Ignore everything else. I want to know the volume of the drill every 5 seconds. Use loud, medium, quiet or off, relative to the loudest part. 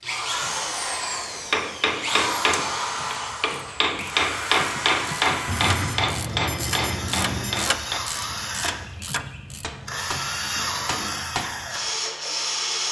loud, medium, loud.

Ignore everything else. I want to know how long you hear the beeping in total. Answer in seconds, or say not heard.
2 s.